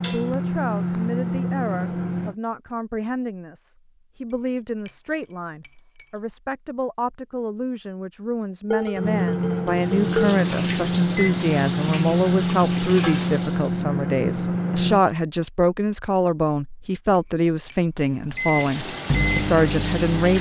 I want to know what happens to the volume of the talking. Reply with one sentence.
The loudness of the talking goes up.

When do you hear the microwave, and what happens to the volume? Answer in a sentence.
You can hear the microwave briefly from 0.0 to 2.4 s; from 8.9 to 15.1 s, at a steady volume; and briefly from 18.2 to 20.3 s.